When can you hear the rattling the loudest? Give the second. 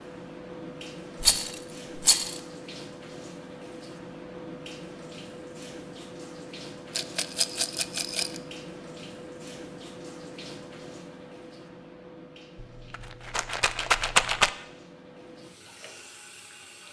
14 s.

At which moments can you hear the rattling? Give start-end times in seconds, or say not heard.
1.2-2.4, 7.0-8.4, 12.6-14.5.